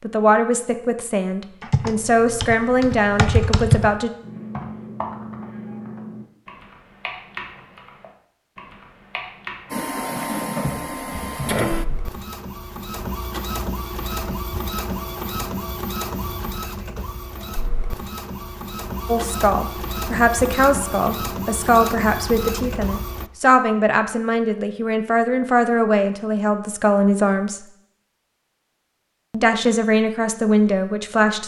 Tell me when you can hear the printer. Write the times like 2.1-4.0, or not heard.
9.7-23.3.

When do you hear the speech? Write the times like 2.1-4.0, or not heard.
0.0-4.1, 19.1-27.6, 29.3-31.4.